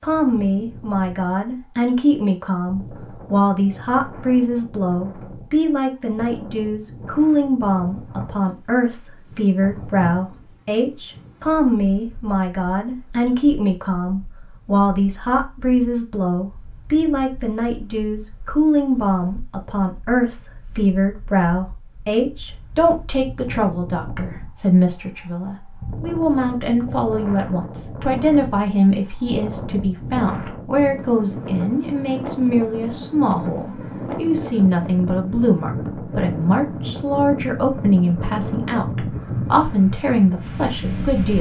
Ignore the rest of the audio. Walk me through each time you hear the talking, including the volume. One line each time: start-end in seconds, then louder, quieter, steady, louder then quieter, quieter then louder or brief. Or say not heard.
0.0-41.3 steady.